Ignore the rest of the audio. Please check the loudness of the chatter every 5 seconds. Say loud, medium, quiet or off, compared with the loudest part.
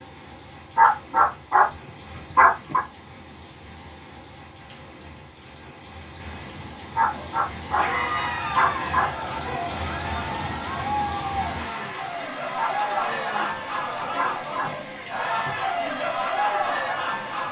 off, loud, loud, loud.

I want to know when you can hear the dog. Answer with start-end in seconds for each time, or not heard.
0.8-2.8, 7.0-8.0, 8.6-9.4, 12.6-14.8.